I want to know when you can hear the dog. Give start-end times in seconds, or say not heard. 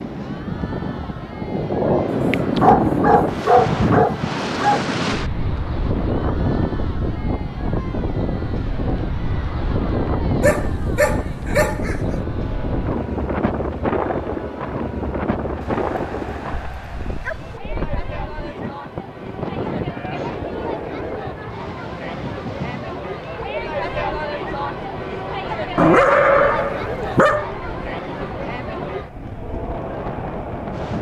2.1-4.8, 10.4-12.1, 15.6-17.6, 25.8-27.4.